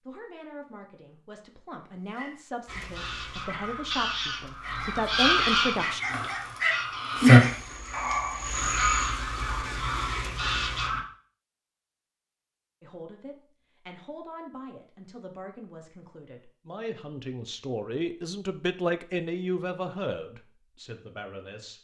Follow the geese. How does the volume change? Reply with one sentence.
The volume of the geese goes up, then down.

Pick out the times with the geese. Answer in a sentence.
You can hear the geese from 2.6 to 11.0 s.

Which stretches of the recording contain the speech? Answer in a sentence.
The speech can be heard from 0.1 to 6.0 s and from 12.8 to 21.7 s.